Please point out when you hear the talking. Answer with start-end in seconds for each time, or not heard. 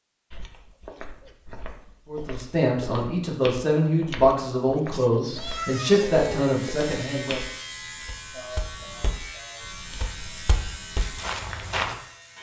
2.0-7.4.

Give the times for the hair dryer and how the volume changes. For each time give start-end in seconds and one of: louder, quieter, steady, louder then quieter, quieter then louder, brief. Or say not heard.
not heard.